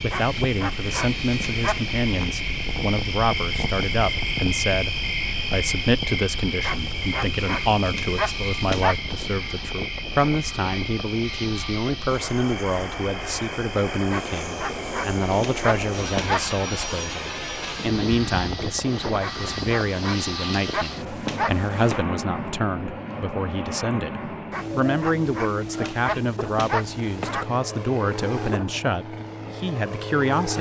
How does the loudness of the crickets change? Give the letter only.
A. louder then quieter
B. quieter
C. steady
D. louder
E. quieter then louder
B.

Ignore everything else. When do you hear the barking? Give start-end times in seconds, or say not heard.
0.1-1.9, 6.6-9.0, 14.1-16.5, 19.2-22.0, 24.5-27.4.